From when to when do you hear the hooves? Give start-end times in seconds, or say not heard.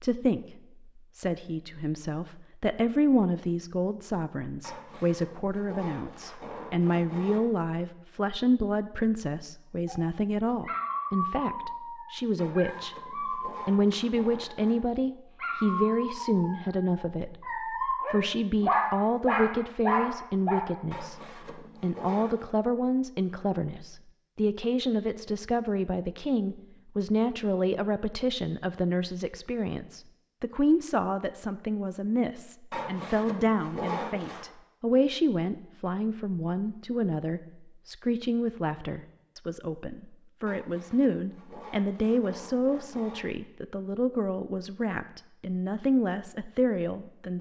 not heard.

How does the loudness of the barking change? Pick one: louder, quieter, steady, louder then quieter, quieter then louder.
quieter then louder.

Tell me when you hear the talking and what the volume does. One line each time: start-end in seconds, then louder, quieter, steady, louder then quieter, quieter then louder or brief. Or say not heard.
0.0-47.3 steady.